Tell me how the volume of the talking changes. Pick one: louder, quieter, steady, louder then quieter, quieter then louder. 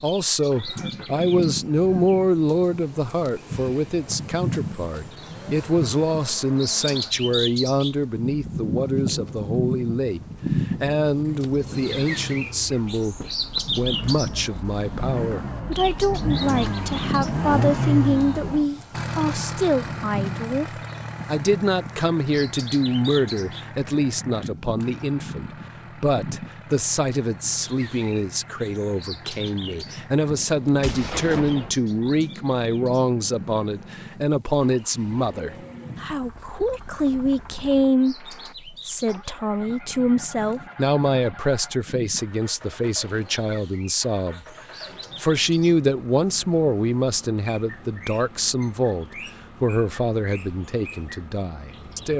steady.